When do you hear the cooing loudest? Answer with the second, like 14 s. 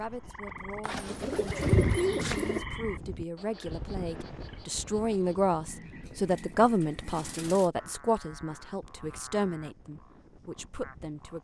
2 s.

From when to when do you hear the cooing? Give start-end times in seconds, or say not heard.
0.8-2.6, 6.0-7.7.